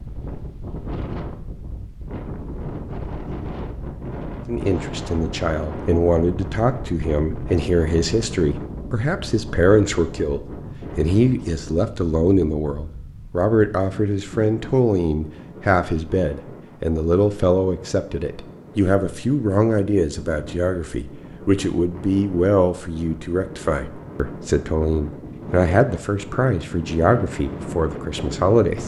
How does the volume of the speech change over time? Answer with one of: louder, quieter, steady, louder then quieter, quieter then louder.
steady.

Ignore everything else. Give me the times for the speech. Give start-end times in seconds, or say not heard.
4.5-28.8.